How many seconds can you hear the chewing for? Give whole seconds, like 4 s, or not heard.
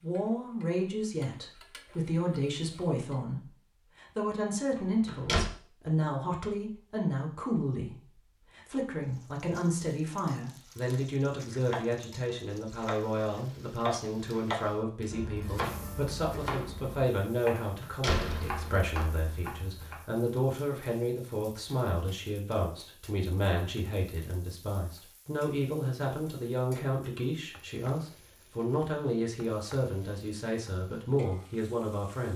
not heard.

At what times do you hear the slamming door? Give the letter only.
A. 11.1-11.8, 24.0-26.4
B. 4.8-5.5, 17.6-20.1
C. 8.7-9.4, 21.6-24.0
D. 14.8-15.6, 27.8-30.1
B.